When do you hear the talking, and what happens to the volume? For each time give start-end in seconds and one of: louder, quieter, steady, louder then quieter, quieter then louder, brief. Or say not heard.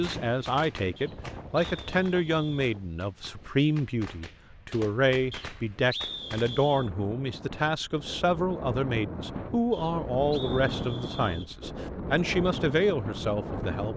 0.0-13.9 steady.